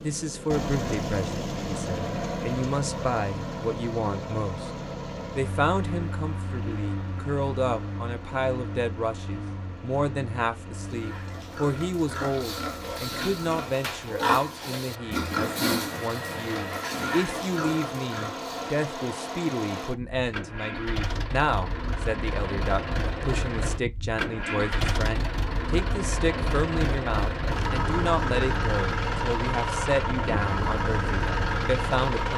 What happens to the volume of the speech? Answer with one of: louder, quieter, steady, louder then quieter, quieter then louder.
steady.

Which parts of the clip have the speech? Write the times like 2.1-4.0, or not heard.
0.0-4.7, 5.3-32.3.